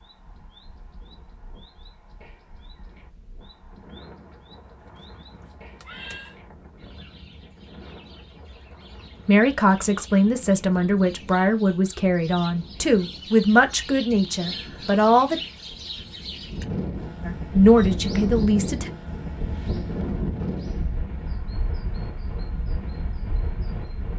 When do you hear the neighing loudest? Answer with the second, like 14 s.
6 s.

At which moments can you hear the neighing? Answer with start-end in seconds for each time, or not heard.
4.8-6.3.